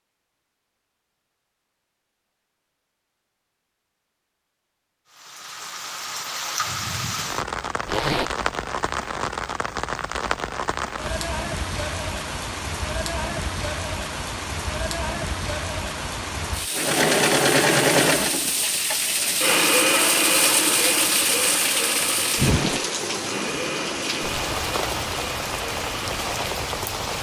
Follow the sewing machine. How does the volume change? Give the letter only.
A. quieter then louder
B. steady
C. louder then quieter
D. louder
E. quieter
E.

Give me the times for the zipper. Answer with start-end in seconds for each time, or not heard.
7.8-8.3, 22.4-22.9.